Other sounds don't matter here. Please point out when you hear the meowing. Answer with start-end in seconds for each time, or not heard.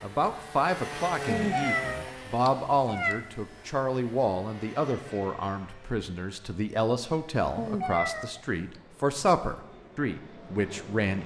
1.2-3.2, 7.5-8.6.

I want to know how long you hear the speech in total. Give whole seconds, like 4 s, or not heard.
11 s.